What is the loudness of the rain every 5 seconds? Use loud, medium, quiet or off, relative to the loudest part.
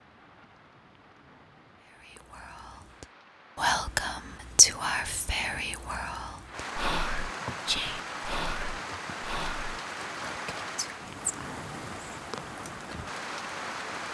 quiet, loud, loud.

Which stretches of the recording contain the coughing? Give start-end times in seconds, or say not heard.
not heard.